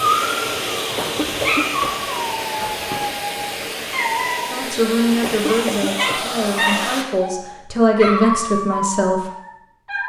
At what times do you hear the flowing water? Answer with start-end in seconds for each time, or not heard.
0.0-7.0.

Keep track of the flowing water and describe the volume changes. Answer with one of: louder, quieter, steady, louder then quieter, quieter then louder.
steady.